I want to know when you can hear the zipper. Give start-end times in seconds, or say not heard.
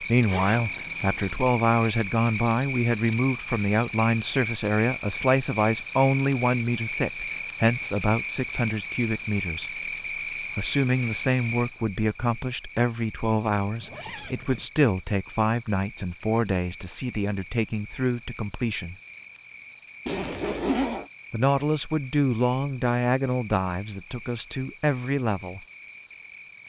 0.2-1.4, 13.8-14.7, 20.1-21.1.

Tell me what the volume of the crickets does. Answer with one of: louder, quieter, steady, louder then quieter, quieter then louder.
quieter.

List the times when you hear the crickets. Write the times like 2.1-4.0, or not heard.
0.0-26.6.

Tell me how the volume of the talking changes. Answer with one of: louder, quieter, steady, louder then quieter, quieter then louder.
steady.